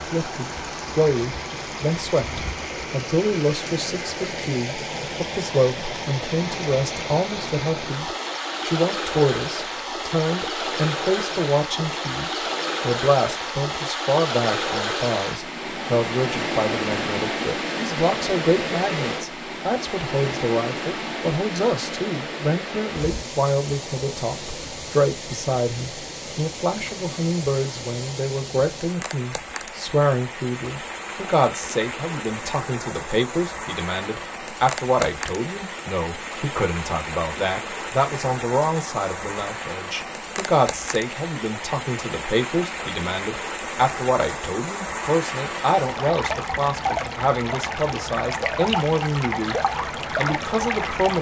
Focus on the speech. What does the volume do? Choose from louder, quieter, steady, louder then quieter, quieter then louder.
steady.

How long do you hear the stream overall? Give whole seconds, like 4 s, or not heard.
51 s.